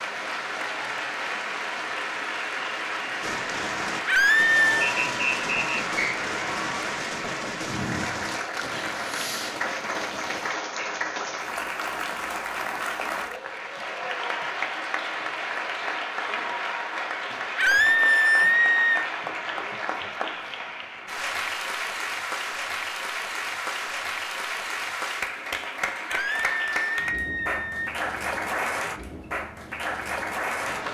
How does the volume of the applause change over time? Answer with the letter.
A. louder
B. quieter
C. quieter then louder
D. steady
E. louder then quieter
D.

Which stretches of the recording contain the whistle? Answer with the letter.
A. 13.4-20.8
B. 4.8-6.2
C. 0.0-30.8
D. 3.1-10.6
B.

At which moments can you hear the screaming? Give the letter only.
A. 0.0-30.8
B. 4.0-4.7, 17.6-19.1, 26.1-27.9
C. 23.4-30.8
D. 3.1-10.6
B.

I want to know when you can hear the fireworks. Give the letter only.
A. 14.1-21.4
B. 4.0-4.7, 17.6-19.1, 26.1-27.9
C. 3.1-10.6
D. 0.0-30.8
C.